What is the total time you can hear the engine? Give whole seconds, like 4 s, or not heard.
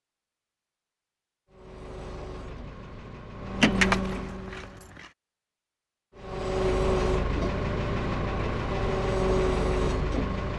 8 s.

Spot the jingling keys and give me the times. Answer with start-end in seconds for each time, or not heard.
3.6-5.0.